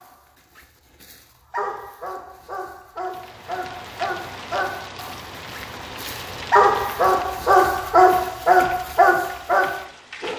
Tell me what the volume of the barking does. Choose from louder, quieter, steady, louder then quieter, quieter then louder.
louder.